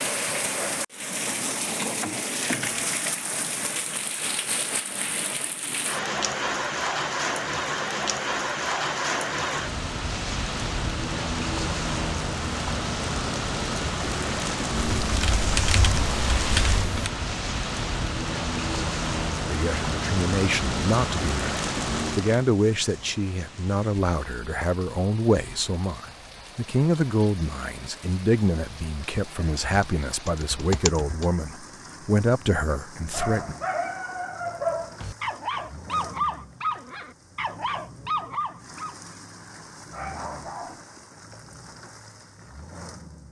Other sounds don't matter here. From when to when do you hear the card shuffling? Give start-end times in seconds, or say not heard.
not heard.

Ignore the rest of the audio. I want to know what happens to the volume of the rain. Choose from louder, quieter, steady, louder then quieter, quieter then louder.
quieter.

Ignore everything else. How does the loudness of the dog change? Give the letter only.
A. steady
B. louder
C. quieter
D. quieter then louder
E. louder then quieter
C.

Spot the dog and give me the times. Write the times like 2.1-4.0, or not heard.
33.1-40.8.